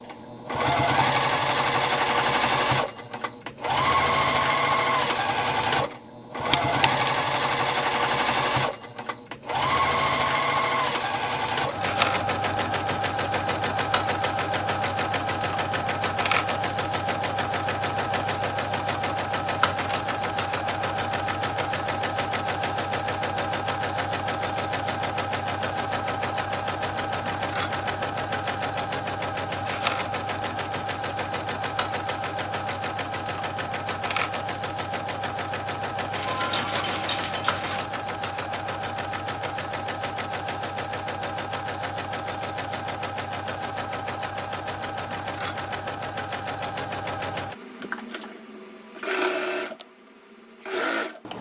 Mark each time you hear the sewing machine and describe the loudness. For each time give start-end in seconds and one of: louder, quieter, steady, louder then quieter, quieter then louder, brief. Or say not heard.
0.0-51.3 quieter.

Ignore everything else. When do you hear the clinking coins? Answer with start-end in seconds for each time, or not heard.
6.5-7.0, 36.1-37.8.